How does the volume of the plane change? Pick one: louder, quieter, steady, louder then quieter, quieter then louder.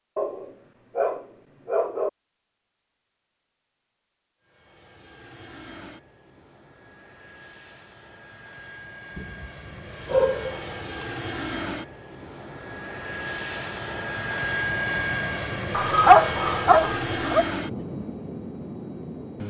louder.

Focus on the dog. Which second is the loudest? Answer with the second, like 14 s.
16 s.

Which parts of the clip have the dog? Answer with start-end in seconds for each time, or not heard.
0.1-2.1, 9.2-11.1, 15.7-17.4.